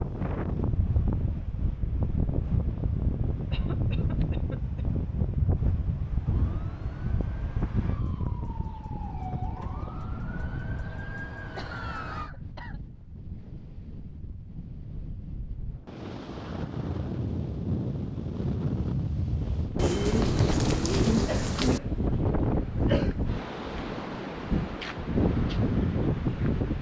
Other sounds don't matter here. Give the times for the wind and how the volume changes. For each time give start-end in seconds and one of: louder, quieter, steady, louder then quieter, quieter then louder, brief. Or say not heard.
0.0-26.7 quieter then louder.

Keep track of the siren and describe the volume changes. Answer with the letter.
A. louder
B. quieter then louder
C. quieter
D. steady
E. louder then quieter
A.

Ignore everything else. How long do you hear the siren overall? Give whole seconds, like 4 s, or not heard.
6 s.